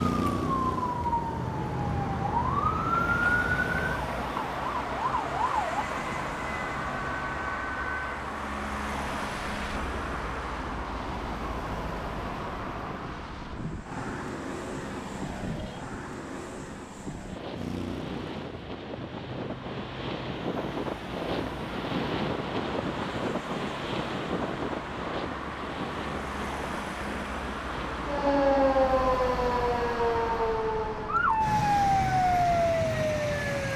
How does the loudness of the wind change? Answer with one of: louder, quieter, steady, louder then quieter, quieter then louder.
louder then quieter.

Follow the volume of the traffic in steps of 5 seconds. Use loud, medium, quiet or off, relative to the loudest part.
loud, loud, loud, medium, medium, loud, loud.